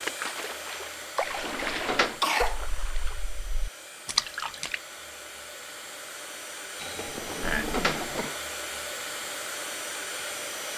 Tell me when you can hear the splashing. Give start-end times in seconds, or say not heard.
0.0-4.8.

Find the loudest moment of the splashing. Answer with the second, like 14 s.
4 s.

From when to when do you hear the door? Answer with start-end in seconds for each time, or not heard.
1.2-2.2, 7.2-8.3.